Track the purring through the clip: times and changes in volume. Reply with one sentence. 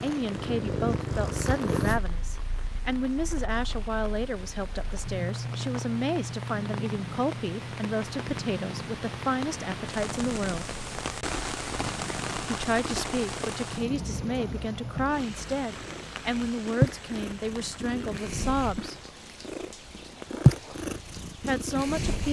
The purring can be heard from 0.0 to 22.2 s, getting quieter then louder.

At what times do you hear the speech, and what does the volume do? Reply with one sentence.
You can hear the speech from 0.0 to 10.7 s, at a steady volume; from 12.4 to 18.9 s, at a steady volume; and briefly from 21.4 to 22.2 s.